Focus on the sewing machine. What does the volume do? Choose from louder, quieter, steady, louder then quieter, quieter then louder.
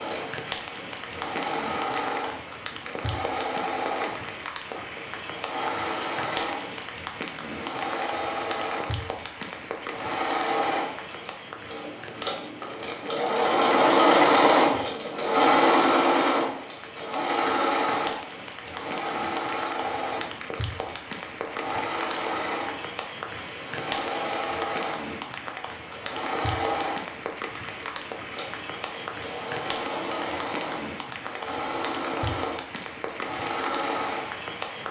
louder then quieter.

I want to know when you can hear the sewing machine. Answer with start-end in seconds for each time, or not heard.
0.0-34.8.